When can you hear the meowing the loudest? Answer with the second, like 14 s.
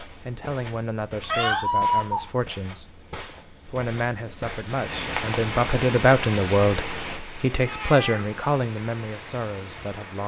2 s.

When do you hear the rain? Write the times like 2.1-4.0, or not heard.
4.7-10.2.